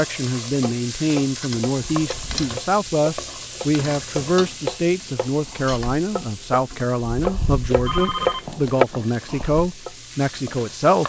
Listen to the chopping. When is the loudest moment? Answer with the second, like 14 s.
9 s.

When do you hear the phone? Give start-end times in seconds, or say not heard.
7.8-9.4.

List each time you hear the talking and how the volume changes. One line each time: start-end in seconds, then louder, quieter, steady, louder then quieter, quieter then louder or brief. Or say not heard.
0.0-11.0 steady.